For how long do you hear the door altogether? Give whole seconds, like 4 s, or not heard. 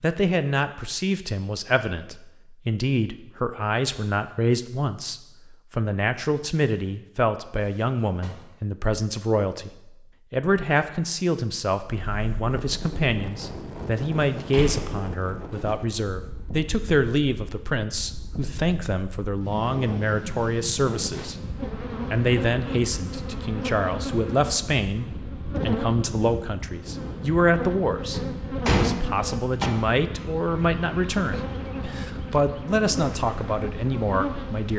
4 s.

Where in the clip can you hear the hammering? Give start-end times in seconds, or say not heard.
not heard.